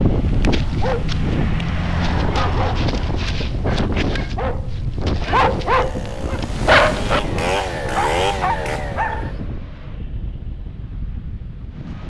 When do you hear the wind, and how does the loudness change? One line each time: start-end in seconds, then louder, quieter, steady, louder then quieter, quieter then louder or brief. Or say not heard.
0.0-12.0 quieter.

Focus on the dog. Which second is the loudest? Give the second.
7 s.